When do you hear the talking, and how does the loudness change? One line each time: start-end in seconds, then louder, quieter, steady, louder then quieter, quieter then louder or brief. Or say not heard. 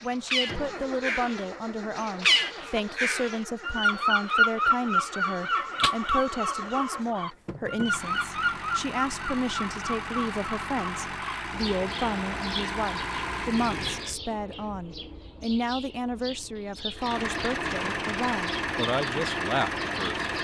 0.0-20.2 steady.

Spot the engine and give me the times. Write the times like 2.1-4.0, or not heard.
0.0-14.2, 16.9-20.3.